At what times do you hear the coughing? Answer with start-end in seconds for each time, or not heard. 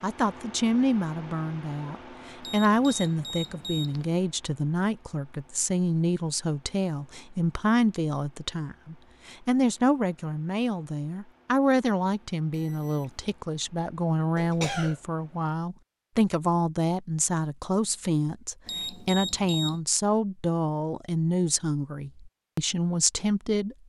14.3-15.0.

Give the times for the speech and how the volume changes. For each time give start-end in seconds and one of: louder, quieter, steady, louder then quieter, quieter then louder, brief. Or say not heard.
0.0-23.8 steady.